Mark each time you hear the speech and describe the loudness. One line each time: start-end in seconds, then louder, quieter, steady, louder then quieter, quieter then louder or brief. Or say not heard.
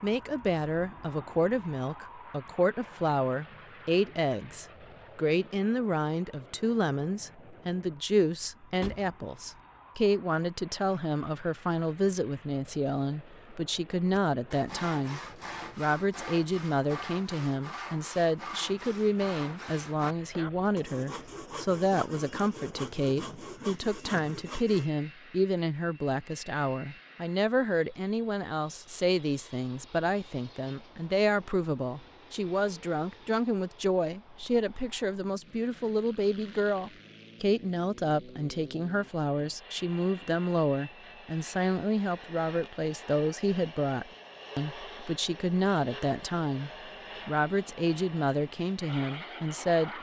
0.0-49.9 steady.